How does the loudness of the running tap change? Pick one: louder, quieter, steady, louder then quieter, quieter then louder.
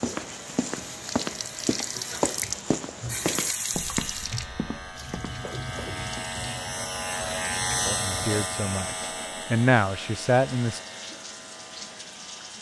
quieter.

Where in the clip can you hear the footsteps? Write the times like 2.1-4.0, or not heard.
0.0-6.2.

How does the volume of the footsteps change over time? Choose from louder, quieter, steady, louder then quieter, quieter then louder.
quieter.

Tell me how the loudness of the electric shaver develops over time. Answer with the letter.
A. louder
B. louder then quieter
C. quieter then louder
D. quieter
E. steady
B.